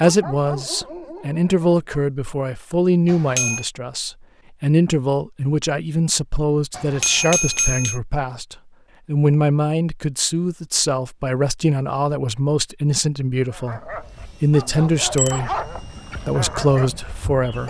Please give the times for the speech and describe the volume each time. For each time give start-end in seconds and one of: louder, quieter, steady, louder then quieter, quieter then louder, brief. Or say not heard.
0.0-17.6 steady.